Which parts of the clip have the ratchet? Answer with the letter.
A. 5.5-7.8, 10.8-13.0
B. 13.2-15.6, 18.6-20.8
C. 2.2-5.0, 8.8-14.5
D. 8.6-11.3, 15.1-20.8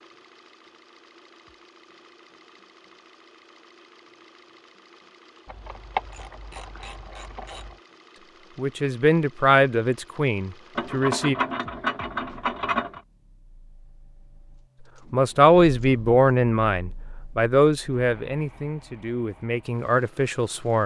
A.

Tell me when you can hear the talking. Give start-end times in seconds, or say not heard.
8.6-11.3, 15.1-20.8.